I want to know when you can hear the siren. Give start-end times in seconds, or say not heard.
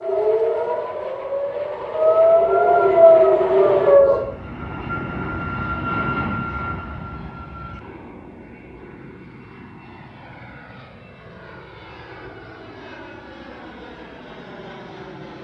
0.0-4.2.